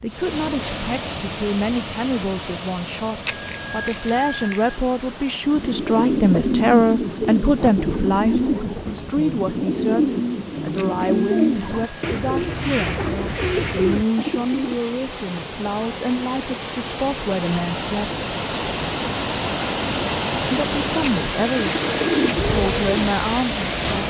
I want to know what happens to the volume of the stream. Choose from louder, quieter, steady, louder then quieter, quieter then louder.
quieter then louder.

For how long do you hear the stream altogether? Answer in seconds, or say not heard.
24 s.